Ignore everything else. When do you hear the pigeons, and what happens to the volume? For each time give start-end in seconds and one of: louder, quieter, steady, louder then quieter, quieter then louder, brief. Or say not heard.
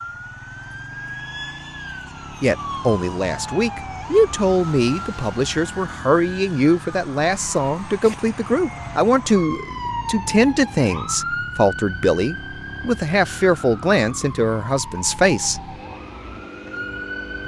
not heard.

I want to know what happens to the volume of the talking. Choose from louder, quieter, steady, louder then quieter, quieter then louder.
steady.